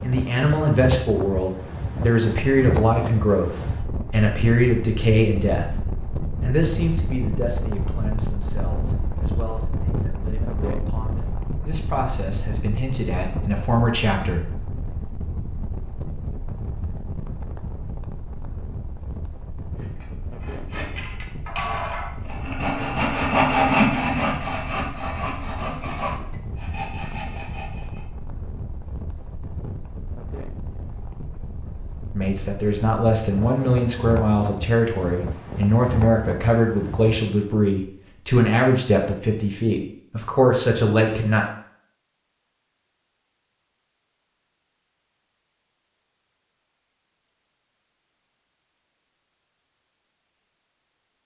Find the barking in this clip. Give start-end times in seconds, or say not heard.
not heard.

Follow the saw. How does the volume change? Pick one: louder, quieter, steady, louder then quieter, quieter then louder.
louder then quieter.